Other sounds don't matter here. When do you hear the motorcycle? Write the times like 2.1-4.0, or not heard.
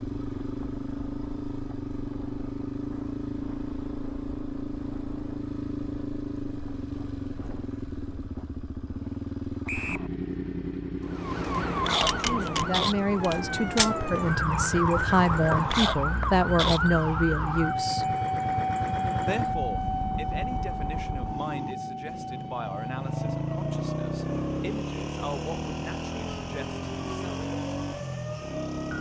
0.0-28.9.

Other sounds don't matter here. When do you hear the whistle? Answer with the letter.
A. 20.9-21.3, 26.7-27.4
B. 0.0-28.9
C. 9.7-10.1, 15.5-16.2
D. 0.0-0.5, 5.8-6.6
C.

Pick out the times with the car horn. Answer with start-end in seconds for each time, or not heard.
not heard.